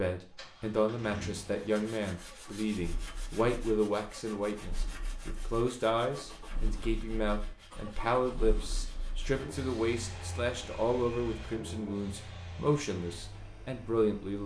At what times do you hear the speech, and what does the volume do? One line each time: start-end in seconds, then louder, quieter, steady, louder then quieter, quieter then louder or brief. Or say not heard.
0.0-14.4 steady.